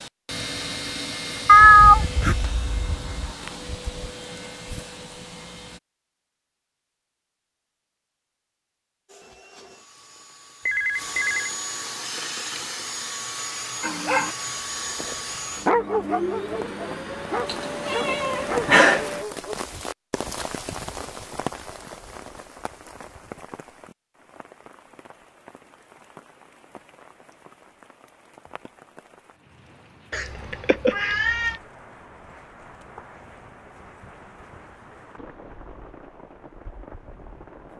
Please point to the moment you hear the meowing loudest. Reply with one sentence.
The volume of the meowing peaks at 2 seconds.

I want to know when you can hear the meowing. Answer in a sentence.
You can hear the meowing from 1.4 to 3.3 s, from 17.4 to 19.1 s and from 30.1 to 31.6 s.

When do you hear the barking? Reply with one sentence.
The barking can be heard from 13.8 to 14.3 s and from 14.9 to 19.6 s.